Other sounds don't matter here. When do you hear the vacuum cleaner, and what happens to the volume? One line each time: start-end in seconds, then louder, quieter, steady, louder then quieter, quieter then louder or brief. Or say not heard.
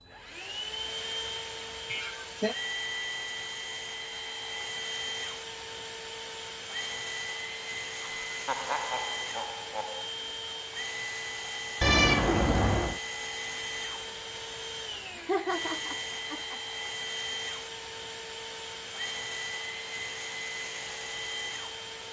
0.0-22.0 steady.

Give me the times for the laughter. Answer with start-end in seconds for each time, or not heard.
1.9-2.5, 8.0-10.1, 15.2-16.6.